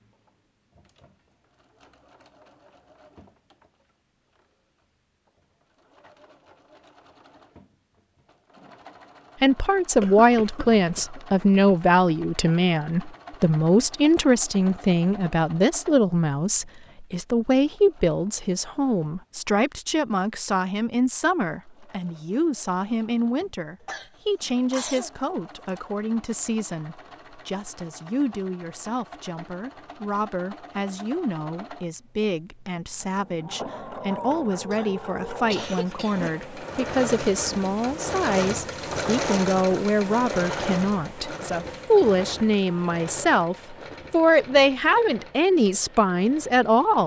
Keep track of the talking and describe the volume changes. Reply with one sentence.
The volume of the talking goes down, then up.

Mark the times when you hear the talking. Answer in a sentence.
The talking can be heard from 9.4 to 47.0 s.